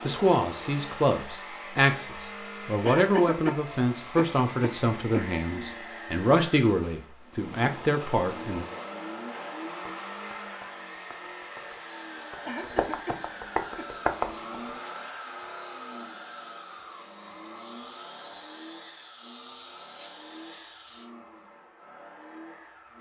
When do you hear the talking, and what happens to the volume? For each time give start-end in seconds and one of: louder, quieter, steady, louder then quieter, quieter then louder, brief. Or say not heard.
0.0-8.7 steady.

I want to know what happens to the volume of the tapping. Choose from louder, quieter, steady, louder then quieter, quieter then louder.
louder.